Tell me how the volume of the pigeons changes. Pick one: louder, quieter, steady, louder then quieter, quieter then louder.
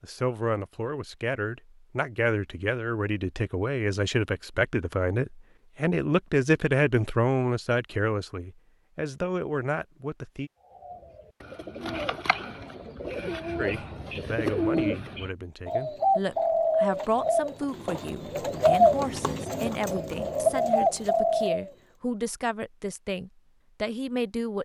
louder.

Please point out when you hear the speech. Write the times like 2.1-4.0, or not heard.
0.0-10.5, 13.6-24.6.